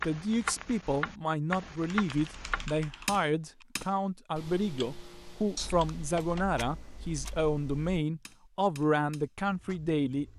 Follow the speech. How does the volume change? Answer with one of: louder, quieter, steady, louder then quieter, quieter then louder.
steady.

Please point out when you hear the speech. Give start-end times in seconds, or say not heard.
0.0-10.2.